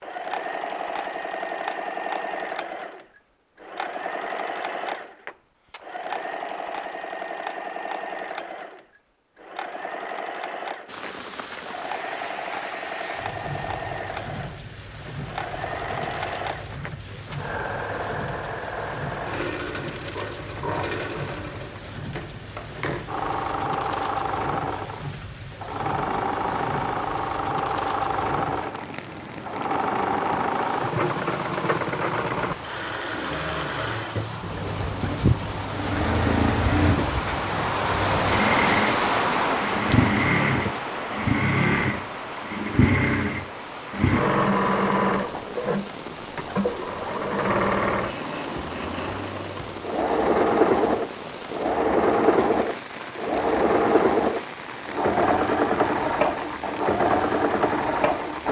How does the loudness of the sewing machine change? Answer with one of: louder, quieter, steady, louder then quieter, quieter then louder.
louder.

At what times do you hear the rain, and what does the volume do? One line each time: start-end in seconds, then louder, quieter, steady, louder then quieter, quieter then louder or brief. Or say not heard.
10.8-58.4 louder then quieter.